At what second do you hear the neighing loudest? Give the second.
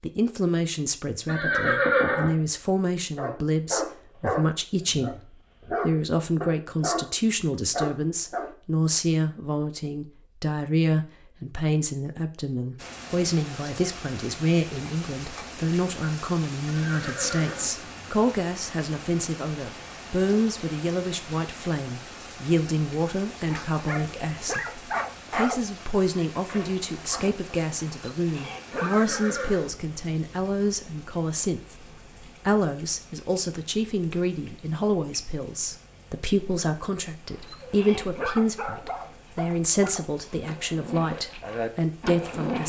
2 s.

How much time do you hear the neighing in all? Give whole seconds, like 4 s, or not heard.
3 s.